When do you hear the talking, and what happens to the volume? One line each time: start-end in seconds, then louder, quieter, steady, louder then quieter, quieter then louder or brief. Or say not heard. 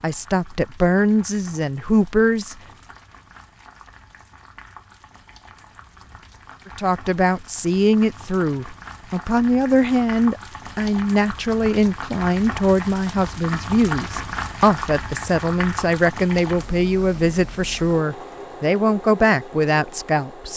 0.0-2.5 brief
6.7-20.5 steady.